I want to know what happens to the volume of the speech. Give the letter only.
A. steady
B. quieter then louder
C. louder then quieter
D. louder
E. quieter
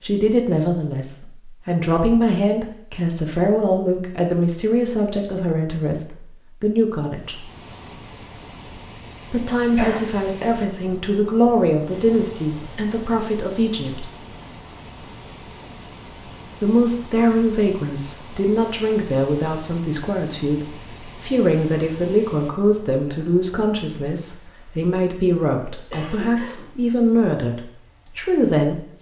A.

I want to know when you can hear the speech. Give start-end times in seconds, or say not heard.
0.0-7.5, 9.3-14.1, 16.6-28.9.